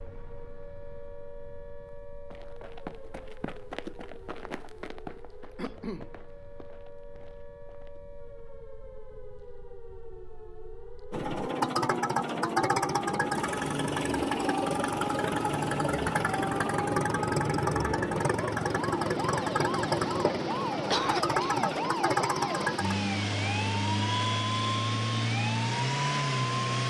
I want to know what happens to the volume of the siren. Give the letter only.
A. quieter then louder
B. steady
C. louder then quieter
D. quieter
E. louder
E.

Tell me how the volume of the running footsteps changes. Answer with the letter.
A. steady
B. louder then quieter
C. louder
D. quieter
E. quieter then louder
D.